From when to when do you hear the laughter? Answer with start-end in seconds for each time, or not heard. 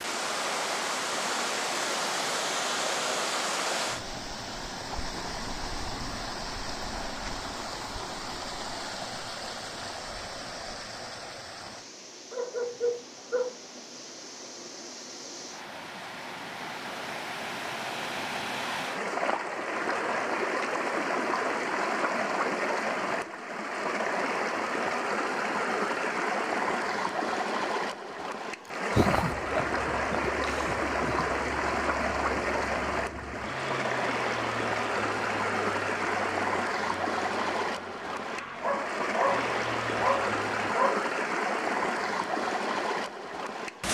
28.9-31.3.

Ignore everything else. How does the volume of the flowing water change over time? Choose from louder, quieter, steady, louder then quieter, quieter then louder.
quieter then louder.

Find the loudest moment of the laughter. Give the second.
29 s.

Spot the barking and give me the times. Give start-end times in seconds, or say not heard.
12.3-13.6, 38.5-41.0.